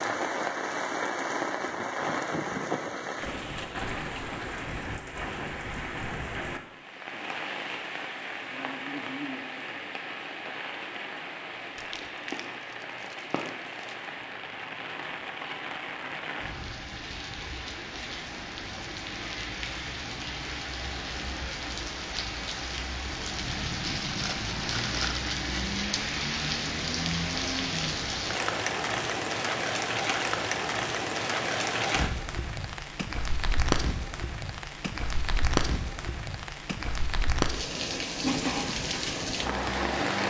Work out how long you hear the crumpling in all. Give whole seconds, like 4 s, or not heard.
4 s.